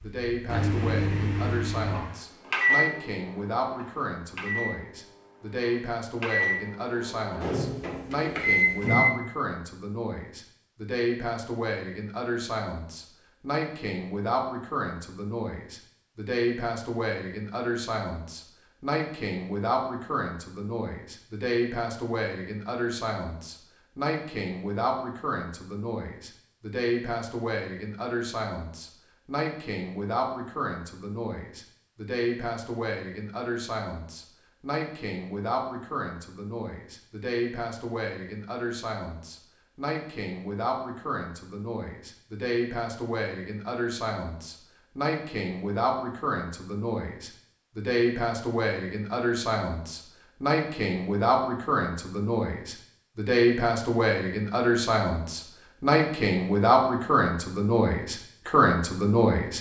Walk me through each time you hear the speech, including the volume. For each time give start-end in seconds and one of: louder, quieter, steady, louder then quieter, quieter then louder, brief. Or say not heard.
0.0-59.5 louder.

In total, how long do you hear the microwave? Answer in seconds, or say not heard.
9 s.